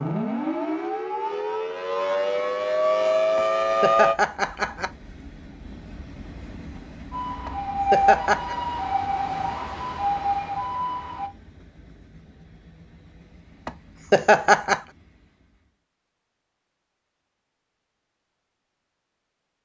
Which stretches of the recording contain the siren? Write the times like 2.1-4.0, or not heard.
0.0-4.2, 7.1-11.3.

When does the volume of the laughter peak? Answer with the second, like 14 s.
14 s.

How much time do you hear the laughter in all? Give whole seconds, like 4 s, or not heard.
4 s.